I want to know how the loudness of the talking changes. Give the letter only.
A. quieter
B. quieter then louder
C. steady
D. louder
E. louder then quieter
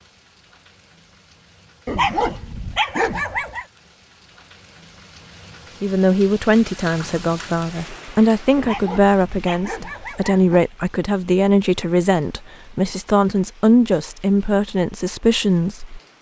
C.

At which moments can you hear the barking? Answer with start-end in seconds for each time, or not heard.
1.9-3.6, 8.6-10.6.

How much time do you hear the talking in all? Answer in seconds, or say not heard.
10 s.